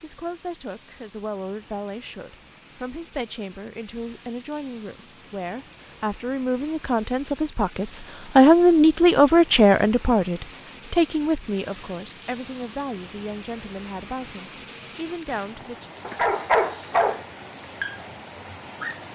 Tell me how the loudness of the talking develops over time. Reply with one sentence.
The loudness of the talking goes up, then down.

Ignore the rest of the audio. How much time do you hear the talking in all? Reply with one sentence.
The talking can be heard for 16 seconds in total.